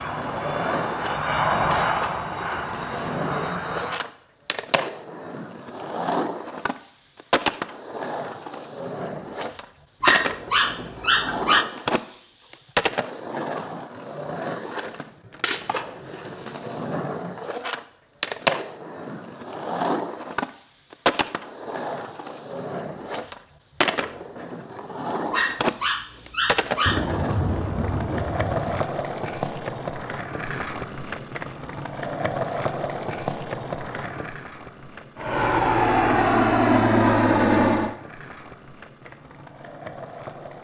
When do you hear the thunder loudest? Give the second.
27 s.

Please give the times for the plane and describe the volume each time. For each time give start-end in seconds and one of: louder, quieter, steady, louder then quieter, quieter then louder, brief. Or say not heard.
0.0-4.0 louder then quieter
35.1-38.0 brief.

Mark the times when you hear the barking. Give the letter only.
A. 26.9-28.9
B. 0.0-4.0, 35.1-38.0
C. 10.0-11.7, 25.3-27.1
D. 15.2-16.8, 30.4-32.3
C.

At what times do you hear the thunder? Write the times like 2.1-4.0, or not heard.
26.9-28.9.